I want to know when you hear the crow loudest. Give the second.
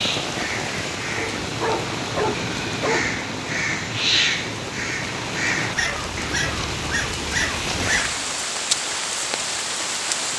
4 s.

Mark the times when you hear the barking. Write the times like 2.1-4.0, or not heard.
1.1-3.0, 5.8-8.2.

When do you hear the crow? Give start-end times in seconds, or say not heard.
0.0-8.4.